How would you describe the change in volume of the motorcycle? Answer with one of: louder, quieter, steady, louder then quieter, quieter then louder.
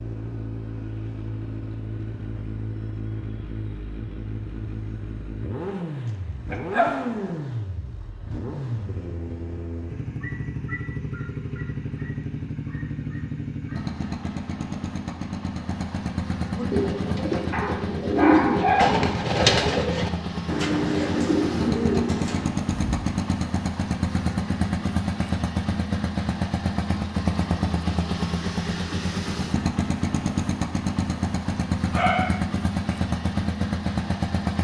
louder.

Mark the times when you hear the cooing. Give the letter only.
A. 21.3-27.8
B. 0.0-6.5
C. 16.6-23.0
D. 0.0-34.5
C.